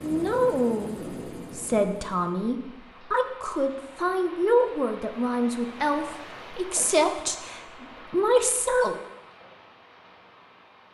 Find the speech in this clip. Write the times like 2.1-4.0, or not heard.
0.0-8.9.